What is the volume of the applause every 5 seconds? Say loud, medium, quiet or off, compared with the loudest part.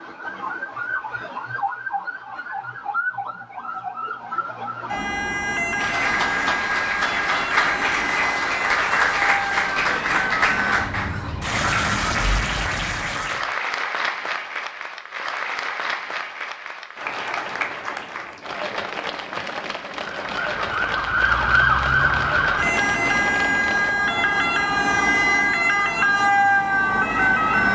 off, loud, loud, medium, medium, off.